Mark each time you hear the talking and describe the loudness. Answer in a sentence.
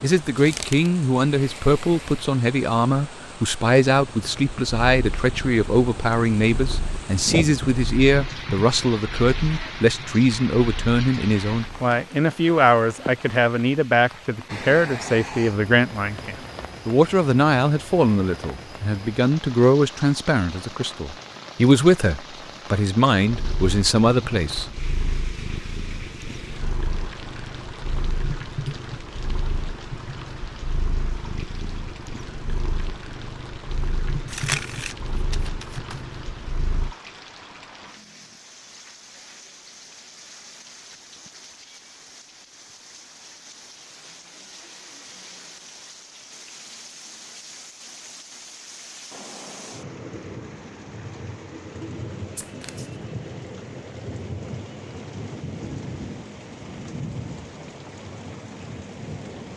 You can hear the talking from 0.0 to 24.7 s, at a steady volume.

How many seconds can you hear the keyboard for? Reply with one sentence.
You can't hear the keyboard here.